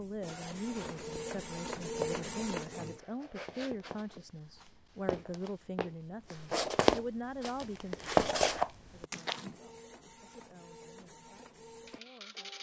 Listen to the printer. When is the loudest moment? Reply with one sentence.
The volume of the printer peaks at 2 seconds.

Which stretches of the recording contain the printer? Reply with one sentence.
The printer can be heard from 0.0 to 3.0 s and from 8.9 to 12.5 s.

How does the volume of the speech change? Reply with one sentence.
The volume of the speech goes down.